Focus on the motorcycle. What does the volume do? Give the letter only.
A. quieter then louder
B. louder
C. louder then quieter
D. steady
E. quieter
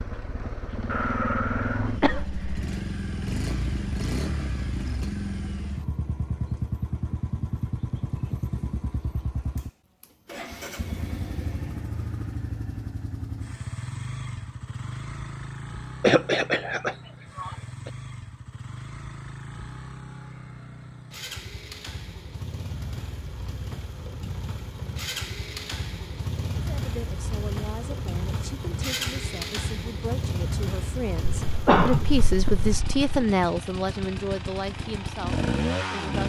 A.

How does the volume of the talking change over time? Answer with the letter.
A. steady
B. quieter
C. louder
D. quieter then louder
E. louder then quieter
E.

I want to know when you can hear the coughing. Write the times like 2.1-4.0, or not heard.
0.9-2.6, 16.0-17.9, 31.4-33.0.